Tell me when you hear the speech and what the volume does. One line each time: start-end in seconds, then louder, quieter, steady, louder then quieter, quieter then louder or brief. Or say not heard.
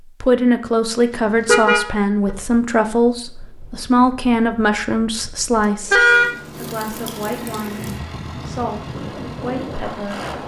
0.2-10.2 quieter.